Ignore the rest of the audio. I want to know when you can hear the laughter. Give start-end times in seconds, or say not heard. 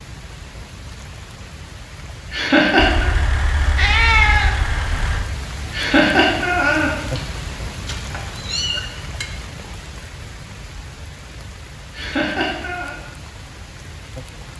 2.3-3.1, 5.7-7.2, 11.9-12.9.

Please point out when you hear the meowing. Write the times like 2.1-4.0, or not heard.
2.8-5.2, 7.8-9.2.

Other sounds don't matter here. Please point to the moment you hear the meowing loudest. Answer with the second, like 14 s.
4 s.